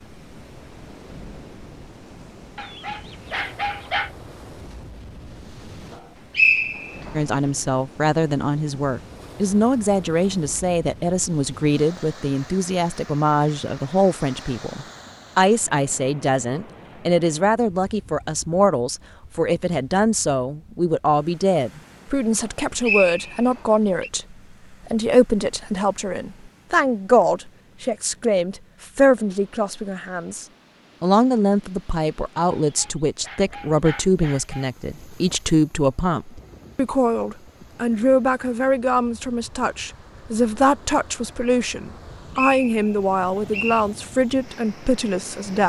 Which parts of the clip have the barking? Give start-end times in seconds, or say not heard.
2.5-4.1, 32.5-34.7.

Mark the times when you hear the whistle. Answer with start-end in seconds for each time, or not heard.
6.3-7.1, 22.8-24.1, 42.4-43.9.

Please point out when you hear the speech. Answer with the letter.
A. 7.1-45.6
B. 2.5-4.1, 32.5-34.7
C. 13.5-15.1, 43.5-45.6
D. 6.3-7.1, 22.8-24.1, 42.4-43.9
A.